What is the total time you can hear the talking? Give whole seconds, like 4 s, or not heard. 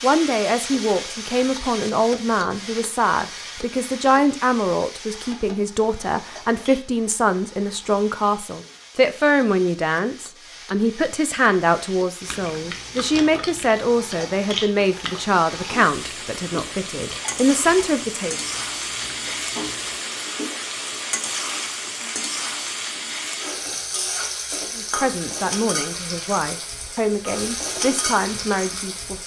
23 s.